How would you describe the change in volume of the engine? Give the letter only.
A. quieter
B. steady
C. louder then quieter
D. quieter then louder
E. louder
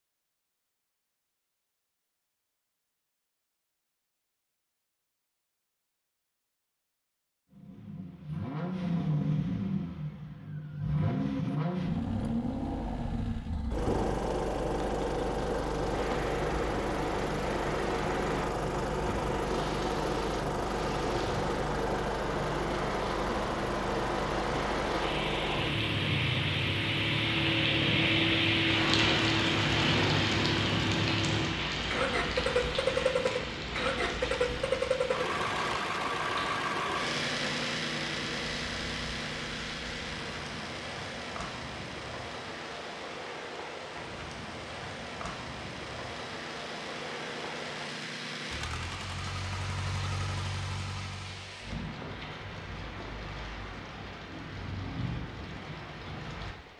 A.